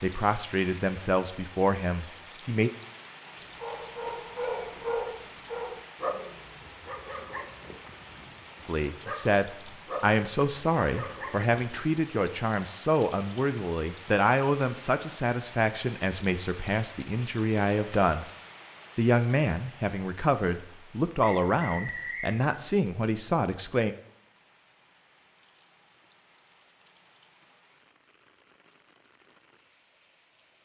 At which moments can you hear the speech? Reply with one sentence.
The speech can be heard from 0.0 to 2.7 s, from 8.7 to 18.2 s and from 18.9 to 23.9 s.